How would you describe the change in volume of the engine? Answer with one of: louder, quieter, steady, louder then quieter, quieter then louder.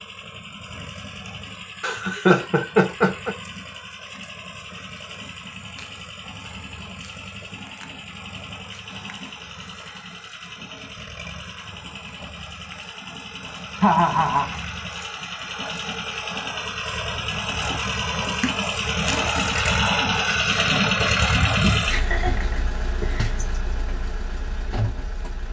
louder.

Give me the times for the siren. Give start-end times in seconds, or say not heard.
not heard.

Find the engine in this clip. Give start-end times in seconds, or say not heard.
0.0-25.4.